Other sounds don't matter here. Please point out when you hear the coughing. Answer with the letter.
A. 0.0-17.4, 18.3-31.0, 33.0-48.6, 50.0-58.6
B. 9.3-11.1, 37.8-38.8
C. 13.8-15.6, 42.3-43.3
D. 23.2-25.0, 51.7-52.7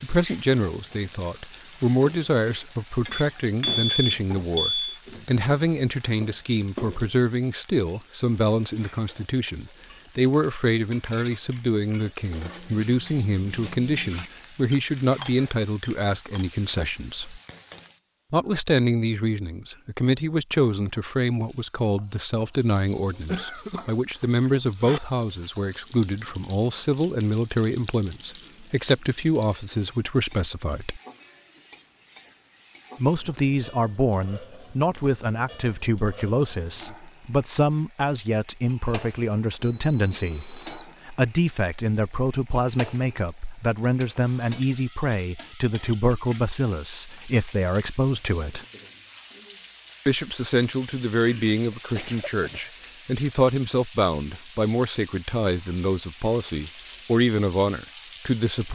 D.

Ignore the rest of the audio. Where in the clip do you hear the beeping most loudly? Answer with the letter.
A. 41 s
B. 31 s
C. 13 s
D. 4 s
D.